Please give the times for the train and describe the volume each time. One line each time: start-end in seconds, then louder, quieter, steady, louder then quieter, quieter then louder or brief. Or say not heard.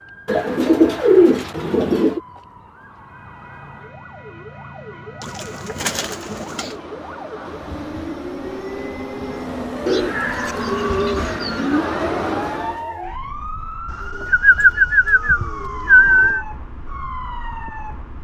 2.9-12.8 louder.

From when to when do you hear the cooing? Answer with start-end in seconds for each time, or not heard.
0.2-2.2, 5.2-6.8, 9.8-11.8, 13.9-16.4.